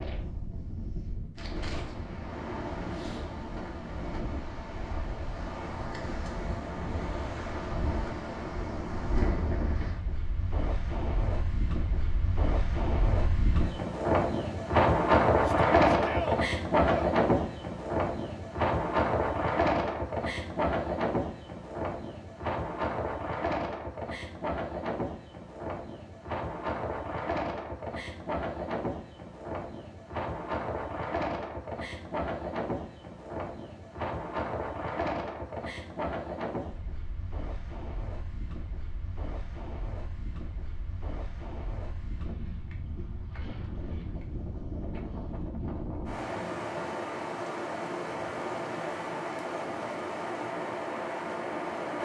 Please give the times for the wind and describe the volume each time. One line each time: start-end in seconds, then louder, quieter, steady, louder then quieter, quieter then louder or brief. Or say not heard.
0.0-51.9 louder then quieter.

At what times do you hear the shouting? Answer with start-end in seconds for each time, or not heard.
15.4-17.1.